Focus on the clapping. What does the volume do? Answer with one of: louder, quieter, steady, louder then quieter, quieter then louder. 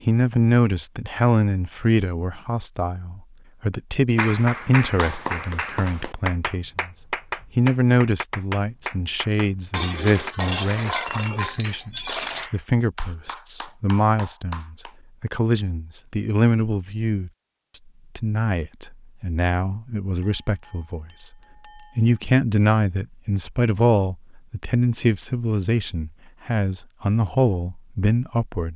quieter.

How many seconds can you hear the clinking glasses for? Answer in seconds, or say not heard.
5 s.